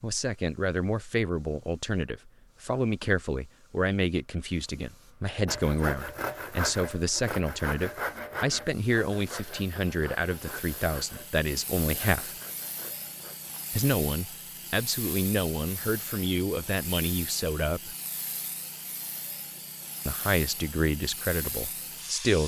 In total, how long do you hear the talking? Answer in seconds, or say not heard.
19 s.